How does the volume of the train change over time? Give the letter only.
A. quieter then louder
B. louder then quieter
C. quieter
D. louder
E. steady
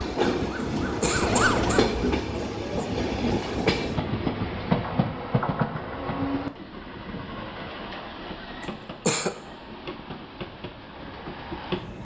C.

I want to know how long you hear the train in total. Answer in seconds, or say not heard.
12 s.